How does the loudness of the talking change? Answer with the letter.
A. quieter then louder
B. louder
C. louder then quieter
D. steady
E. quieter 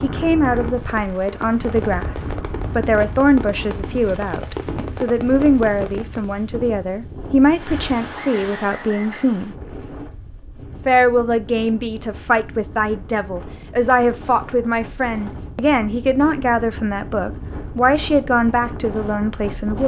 D.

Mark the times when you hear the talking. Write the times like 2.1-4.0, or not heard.
0.0-9.6, 10.8-19.8.